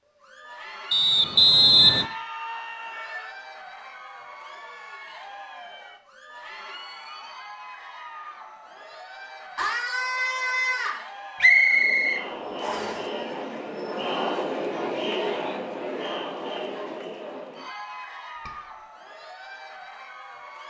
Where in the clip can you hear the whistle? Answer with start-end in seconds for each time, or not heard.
0.9-2.0, 11.4-13.0.